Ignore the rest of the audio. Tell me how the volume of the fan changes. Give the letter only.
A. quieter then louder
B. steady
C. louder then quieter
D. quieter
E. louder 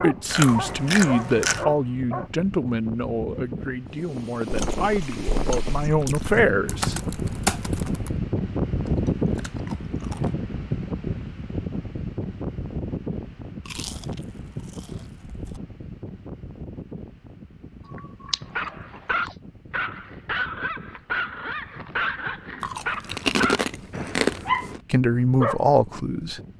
C.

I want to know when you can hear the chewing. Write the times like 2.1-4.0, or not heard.
0.2-1.6, 4.5-6.5, 8.8-10.3, 13.7-15.6, 17.9-19.4, 22.6-24.8.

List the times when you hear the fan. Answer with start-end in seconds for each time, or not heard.
0.0-26.5.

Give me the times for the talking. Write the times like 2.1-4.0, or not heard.
0.0-7.0, 24.9-26.4.